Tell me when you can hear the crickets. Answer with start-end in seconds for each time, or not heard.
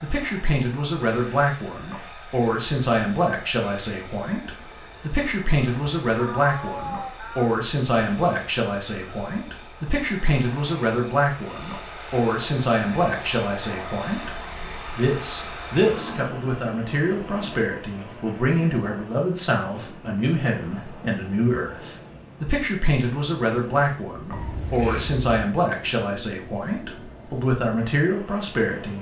not heard.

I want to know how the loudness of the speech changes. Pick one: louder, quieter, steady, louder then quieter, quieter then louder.
steady.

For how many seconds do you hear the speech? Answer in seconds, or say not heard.
29 s.